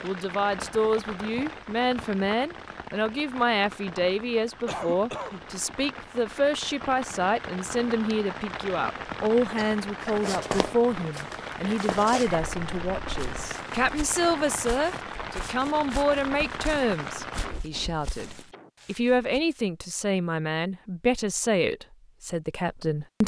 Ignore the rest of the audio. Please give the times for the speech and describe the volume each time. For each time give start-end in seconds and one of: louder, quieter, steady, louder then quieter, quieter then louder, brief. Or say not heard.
0.0-23.2 steady.